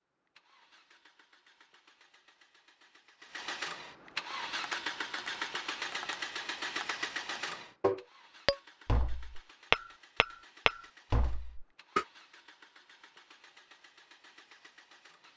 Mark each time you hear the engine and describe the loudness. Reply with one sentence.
You can hear the engine from 0.0 to 15.3 s, getting louder then quieter.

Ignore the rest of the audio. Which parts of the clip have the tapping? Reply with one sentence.
You can hear the tapping from 4.3 to 12.1 s.